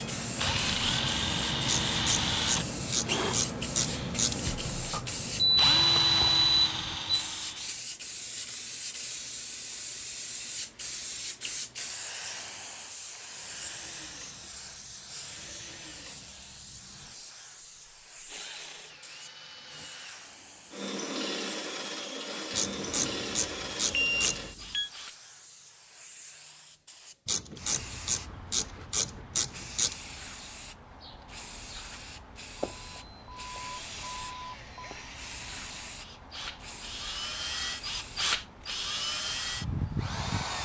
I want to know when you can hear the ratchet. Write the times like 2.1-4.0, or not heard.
1.6-4.4, 22.6-24.4, 27.2-29.9.